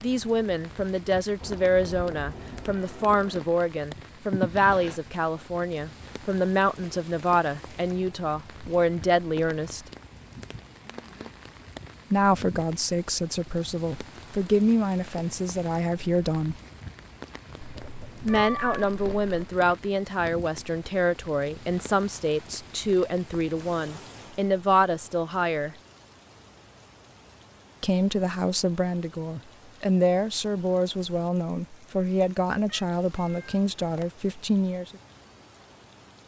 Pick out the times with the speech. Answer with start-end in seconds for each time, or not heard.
0.0-9.8, 12.1-16.6, 18.2-25.8, 27.8-35.0.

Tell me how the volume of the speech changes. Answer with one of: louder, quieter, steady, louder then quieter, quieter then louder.
steady.